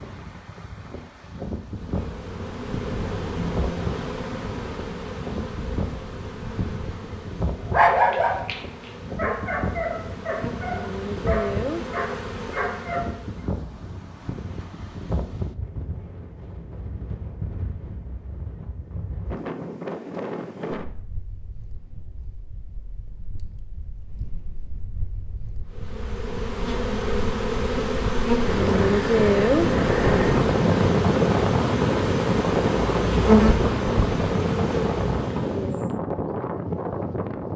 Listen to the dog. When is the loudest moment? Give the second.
8 s.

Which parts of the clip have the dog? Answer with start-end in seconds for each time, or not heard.
7.7-13.4.